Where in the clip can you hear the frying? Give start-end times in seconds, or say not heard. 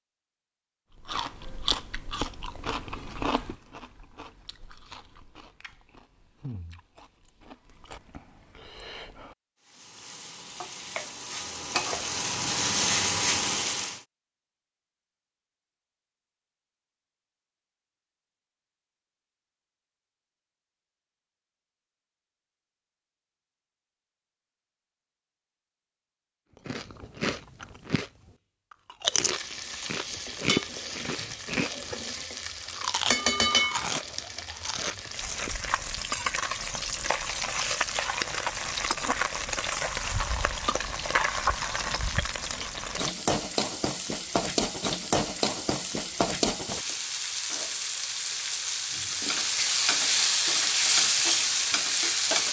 9.7-14.0, 29.1-52.4.